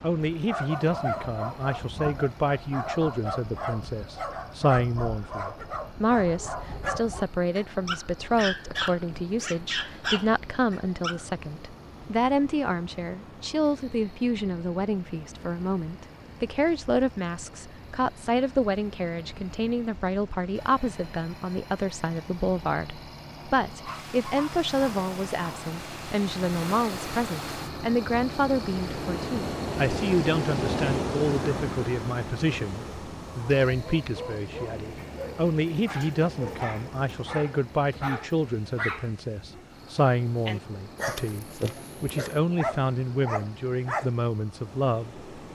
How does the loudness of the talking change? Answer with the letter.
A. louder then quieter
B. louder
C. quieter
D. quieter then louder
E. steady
E.